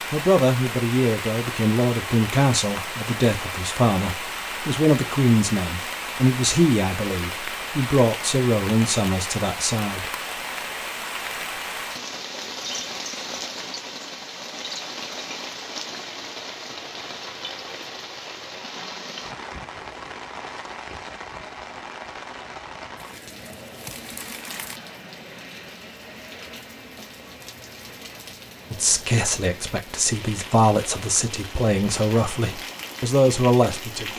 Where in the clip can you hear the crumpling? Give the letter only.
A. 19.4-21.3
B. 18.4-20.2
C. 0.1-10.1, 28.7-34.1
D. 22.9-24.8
D.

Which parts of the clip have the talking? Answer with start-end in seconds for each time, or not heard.
0.1-10.1, 28.7-34.1.